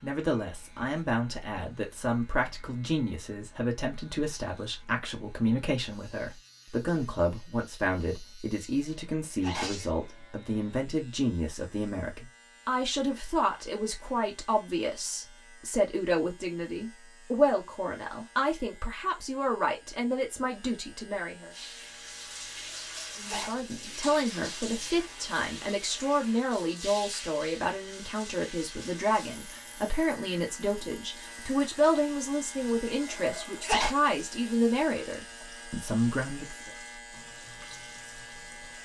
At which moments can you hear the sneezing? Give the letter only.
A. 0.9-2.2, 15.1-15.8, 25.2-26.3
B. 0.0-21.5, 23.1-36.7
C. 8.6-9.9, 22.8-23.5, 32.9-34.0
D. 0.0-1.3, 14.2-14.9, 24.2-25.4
C.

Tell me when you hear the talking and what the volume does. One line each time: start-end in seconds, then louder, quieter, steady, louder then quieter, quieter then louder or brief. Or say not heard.
0.0-21.5 steady
23.1-36.7 steady.